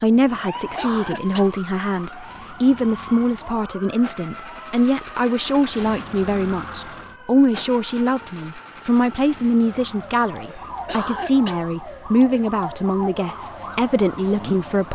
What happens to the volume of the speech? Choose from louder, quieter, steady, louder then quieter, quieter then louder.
steady.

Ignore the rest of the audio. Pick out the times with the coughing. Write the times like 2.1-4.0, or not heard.
0.6-1.6, 10.4-11.7.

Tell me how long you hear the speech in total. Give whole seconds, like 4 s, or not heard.
15 s.